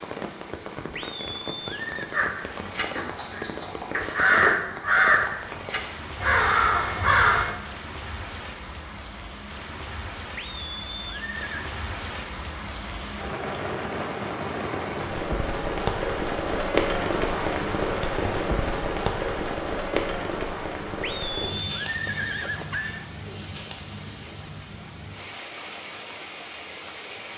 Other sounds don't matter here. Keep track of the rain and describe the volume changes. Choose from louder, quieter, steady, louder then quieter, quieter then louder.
louder then quieter.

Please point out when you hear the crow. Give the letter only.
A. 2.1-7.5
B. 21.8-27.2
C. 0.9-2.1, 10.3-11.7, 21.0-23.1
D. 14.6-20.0
A.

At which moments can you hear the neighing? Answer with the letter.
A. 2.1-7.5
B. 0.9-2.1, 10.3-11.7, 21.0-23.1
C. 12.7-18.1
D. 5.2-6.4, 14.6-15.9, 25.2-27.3
B.